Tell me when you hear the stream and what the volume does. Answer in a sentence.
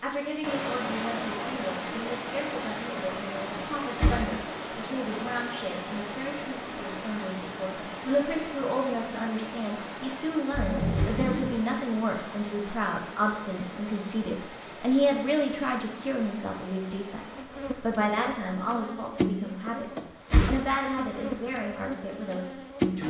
You can hear the stream from 0.0 to 17.4 s, getting quieter.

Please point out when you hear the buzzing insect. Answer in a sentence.
You can hear the buzzing insect from 17.3 to 23.0 s.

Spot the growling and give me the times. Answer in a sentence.
The growling can be heard from 10.5 to 11.6 s.